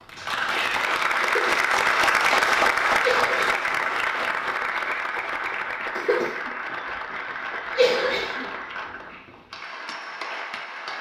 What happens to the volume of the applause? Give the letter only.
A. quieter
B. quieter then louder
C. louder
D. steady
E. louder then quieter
A.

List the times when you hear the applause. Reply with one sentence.
The applause can be heard from 0.0 to 10.9 s.